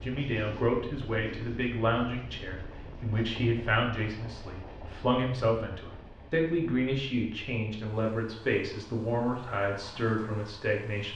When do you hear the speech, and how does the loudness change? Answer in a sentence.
You can hear the speech from 0.0 to 11.1 s, at a steady volume.